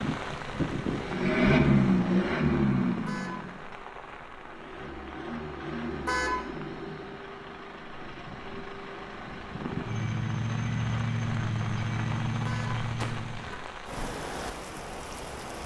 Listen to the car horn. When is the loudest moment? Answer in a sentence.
The loudest moment of the car horn is at 6 seconds.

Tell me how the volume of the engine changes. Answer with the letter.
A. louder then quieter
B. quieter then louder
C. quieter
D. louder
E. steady
B.